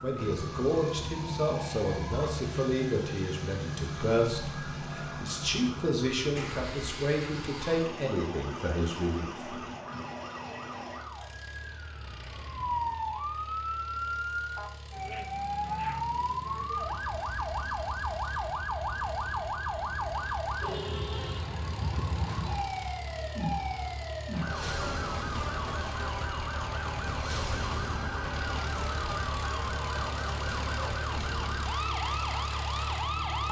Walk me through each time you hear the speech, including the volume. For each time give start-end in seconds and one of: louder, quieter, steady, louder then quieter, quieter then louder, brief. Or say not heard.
0.0-9.4 steady.